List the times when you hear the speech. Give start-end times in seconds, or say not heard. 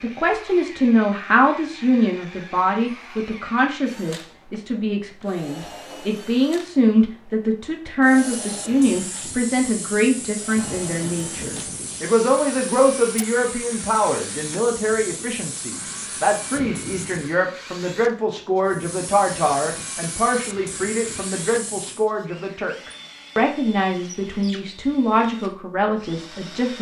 0.0-26.7.